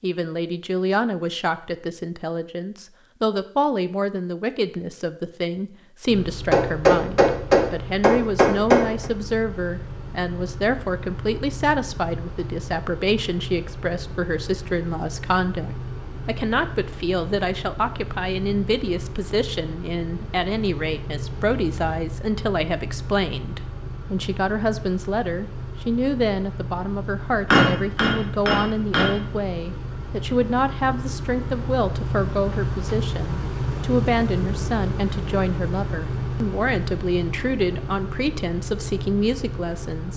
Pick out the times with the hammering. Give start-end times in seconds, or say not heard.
6.5-9.1, 27.5-29.1.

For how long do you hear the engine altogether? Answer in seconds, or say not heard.
34 s.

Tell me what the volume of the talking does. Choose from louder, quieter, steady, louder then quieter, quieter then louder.
steady.